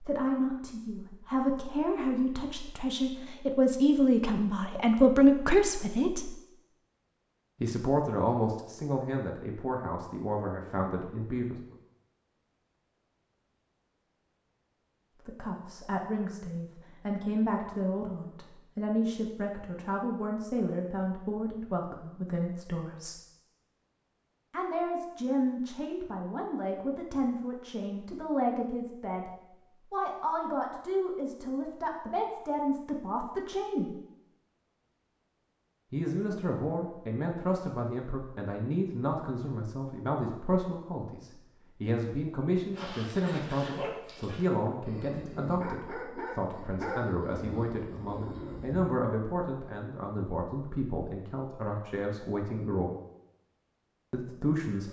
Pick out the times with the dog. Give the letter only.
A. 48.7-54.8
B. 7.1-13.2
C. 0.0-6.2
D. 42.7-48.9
D.